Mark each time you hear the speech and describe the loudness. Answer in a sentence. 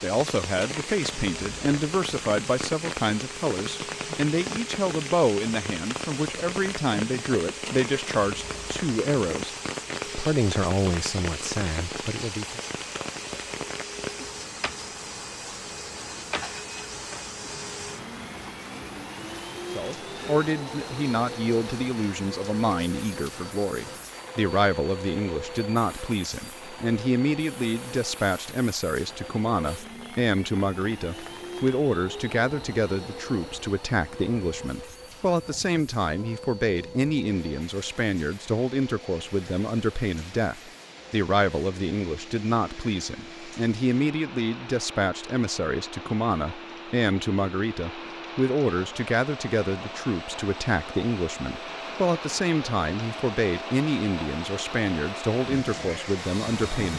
You can hear the speech from 0.0 to 12.6 s, at a steady volume; and from 19.7 to 56.9 s, at a steady volume.